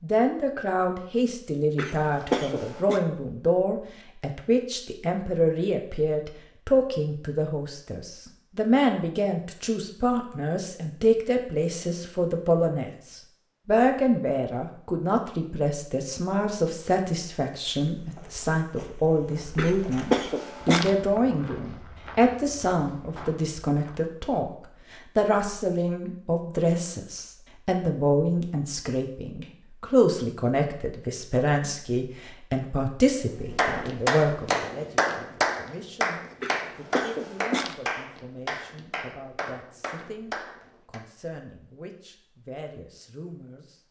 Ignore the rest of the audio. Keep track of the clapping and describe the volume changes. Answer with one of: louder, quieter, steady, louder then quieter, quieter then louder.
quieter.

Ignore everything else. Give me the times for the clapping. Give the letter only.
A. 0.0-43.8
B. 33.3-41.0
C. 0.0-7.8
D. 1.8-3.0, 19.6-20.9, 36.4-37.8
B.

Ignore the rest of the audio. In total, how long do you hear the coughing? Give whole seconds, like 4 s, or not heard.
4 s.